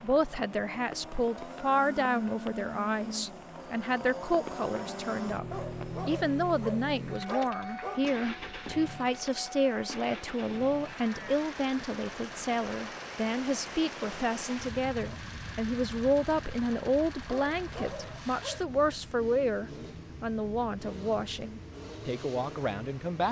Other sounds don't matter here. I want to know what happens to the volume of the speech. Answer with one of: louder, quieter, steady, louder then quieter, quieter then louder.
steady.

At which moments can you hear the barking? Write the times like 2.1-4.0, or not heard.
5.5-8.2, 17.3-18.6.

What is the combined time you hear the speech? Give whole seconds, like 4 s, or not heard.
23 s.